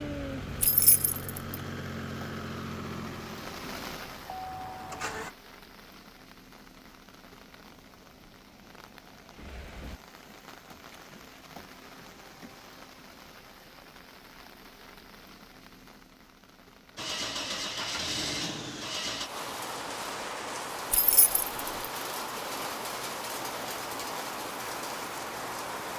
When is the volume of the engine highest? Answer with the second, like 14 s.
18 s.